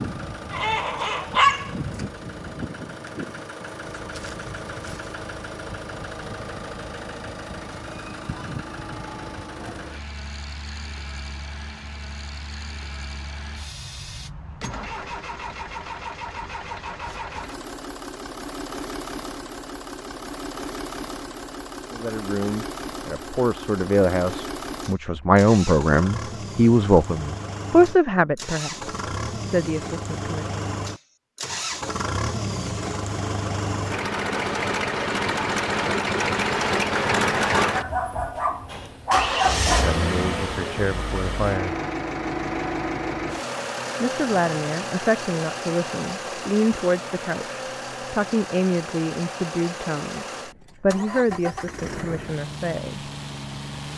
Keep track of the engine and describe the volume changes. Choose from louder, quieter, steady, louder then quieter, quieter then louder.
louder then quieter.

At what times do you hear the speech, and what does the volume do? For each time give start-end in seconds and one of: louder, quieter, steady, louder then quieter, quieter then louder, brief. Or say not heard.
21.9-30.6 louder then quieter
39.4-41.8 brief
44.0-53.1 steady.